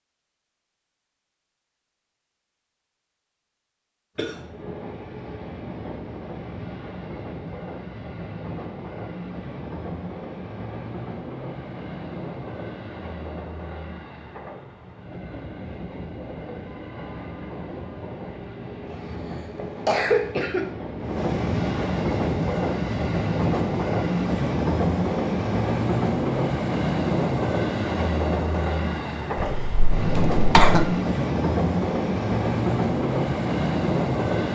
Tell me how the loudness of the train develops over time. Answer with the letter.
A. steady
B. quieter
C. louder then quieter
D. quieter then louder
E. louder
E.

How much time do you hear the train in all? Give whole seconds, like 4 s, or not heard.
30 s.